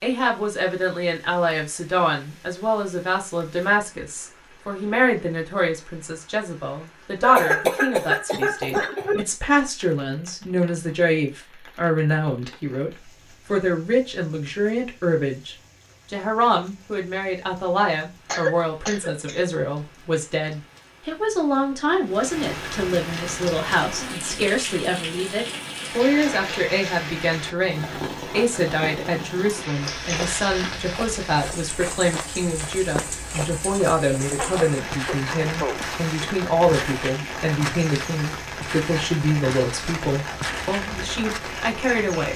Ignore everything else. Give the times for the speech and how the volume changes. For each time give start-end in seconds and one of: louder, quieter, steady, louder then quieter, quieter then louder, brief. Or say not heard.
0.0-12.9 steady
13.5-42.3 steady.